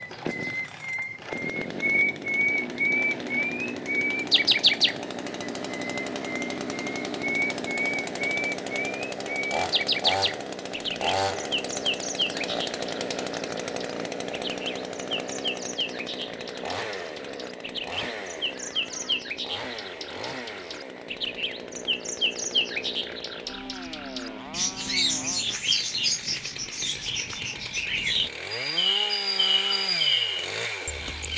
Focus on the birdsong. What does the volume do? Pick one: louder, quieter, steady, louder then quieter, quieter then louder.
quieter then louder.